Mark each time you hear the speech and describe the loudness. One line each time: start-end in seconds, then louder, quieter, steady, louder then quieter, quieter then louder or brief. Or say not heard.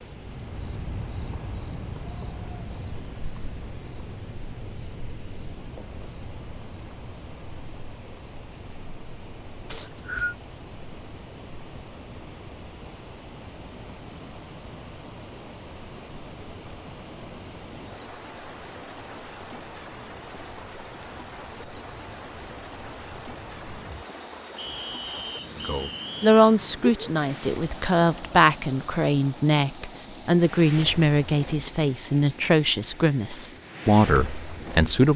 25.6-35.1 steady.